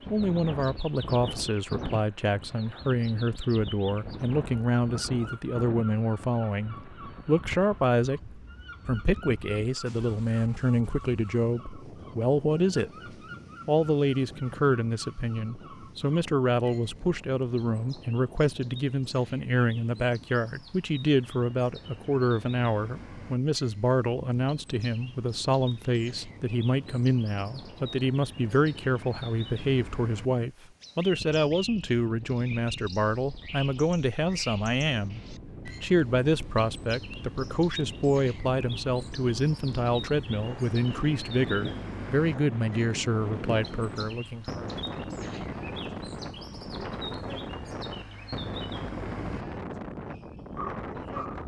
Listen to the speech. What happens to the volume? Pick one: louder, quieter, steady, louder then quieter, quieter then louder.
steady.